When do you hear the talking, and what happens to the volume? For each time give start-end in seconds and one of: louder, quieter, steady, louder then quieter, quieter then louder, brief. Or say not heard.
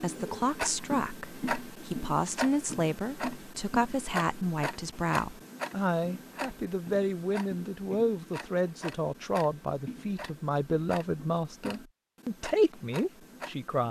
0.0-13.8 steady.